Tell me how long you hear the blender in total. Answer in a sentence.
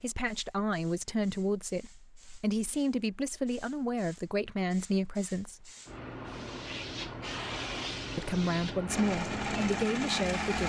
The blender can be heard for 2 seconds in total.